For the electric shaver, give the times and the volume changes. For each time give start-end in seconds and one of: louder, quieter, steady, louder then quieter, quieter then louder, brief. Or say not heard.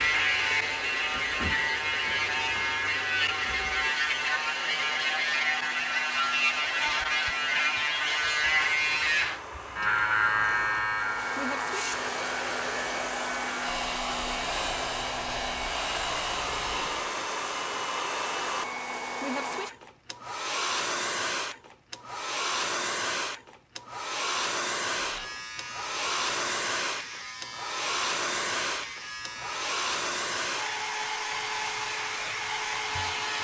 0.0-17.1 quieter
24.9-33.4 steady.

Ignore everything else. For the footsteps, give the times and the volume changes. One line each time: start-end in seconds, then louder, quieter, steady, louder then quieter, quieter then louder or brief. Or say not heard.
not heard.